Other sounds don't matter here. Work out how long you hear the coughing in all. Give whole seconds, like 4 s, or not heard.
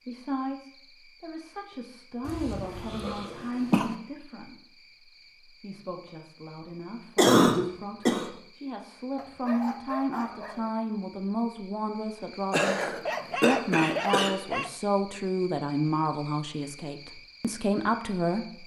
5 s.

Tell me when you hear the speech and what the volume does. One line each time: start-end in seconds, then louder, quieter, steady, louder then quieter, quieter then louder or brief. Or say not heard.
0.1-18.6 quieter then louder.